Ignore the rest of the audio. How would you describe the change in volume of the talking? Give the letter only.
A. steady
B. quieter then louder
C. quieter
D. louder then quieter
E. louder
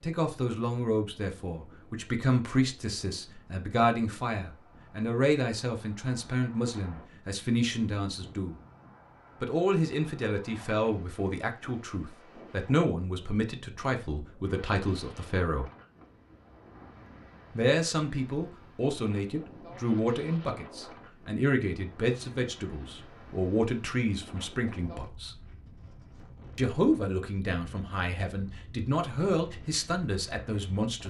A.